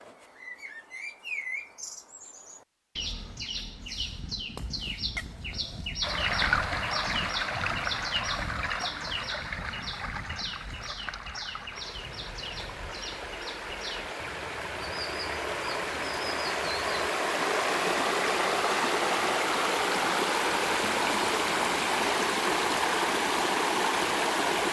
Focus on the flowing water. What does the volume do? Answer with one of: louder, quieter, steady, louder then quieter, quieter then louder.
quieter then louder.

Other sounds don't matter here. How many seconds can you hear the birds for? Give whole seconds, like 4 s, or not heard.
17 s.